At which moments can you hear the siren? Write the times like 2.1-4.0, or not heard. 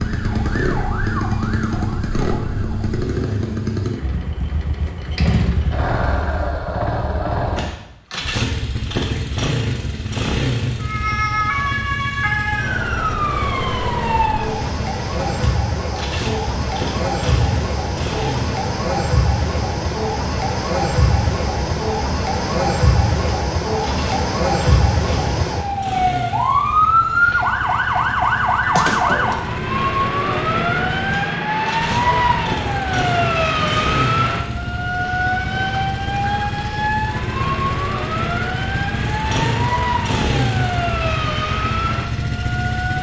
0.0-3.0, 10.8-42.9.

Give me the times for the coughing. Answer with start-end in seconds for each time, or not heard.
not heard.